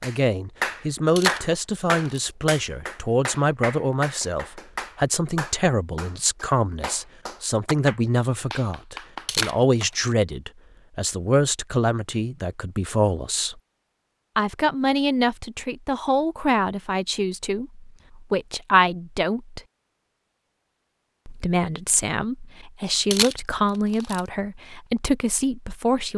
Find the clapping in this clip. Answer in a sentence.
The clapping can be heard from 0.0 to 9.9 s.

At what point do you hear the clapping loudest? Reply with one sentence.
The loudest moment of the clapping is at 1 second.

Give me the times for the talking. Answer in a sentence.
You can hear the talking from 0.0 to 13.6 s, from 14.3 to 19.6 s and from 21.2 to 26.1 s.